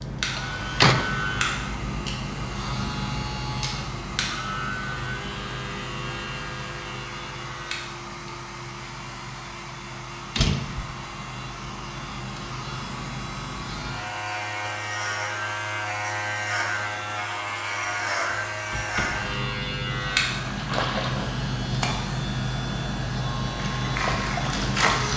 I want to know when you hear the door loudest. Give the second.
1 s.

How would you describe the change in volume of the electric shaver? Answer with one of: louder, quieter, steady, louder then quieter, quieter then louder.
quieter then louder.